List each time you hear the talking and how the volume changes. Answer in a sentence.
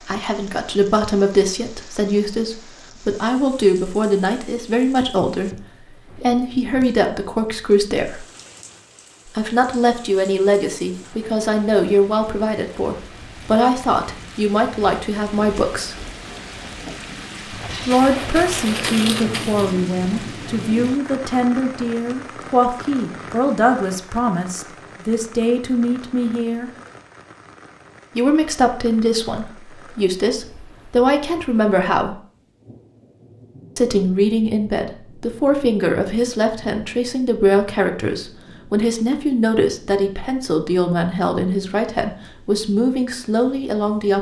You can hear the talking from 0.1 to 8.2 s, at a steady volume; from 9.2 to 15.9 s, at a steady volume; from 17.9 to 26.7 s, at a steady volume; from 28.1 to 32.2 s, getting quieter then louder; and from 33.8 to 44.1 s, at a steady volume.